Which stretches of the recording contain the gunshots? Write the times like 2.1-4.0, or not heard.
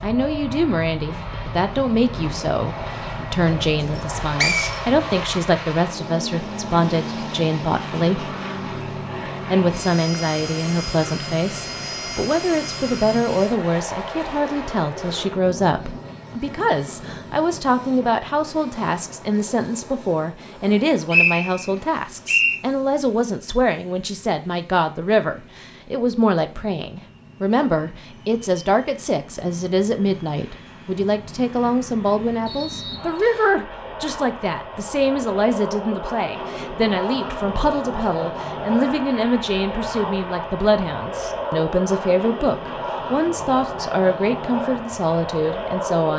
not heard.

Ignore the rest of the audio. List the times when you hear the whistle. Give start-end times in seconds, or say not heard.
4.0-4.8, 21.1-22.6, 32.5-33.6.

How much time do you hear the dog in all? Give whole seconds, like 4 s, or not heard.
not heard.